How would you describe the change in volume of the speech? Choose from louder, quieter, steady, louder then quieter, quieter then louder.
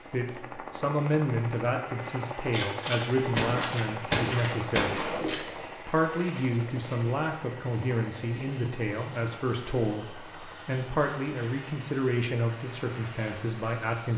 steady.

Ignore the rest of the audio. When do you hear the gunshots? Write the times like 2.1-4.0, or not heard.
2.5-5.7.